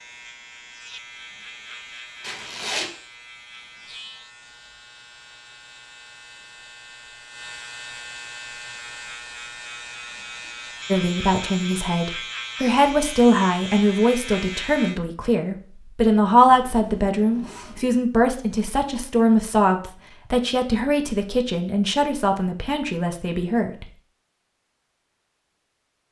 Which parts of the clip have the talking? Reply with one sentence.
You can hear the talking from 10.8 to 23.9 s.